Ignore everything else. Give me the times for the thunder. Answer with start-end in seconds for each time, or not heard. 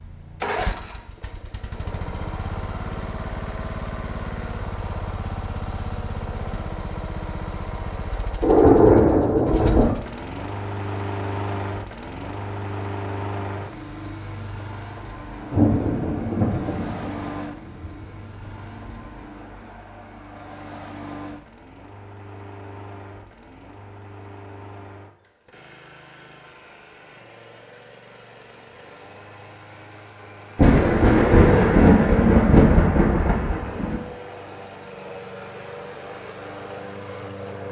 8.4-9.9, 15.5-17.9, 30.6-34.0.